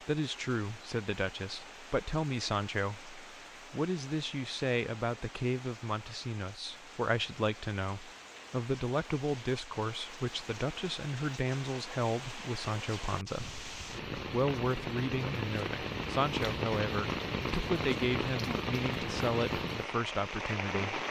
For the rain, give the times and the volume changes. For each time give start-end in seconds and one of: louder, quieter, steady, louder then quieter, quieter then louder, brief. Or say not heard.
0.0-21.0 louder.